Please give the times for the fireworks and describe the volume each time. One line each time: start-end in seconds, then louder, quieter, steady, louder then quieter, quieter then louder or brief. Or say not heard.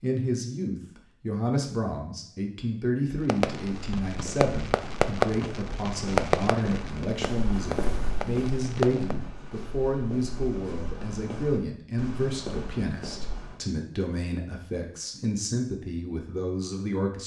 3.2-9.2 louder then quieter.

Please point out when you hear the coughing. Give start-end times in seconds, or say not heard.
not heard.